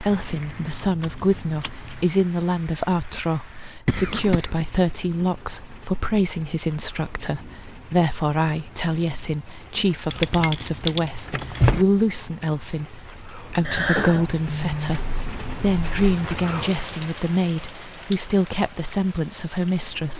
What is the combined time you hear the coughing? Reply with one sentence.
You can hear the coughing for 2 seconds altogether.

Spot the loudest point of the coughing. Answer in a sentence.
The loudest moment of the coughing is at 14 seconds.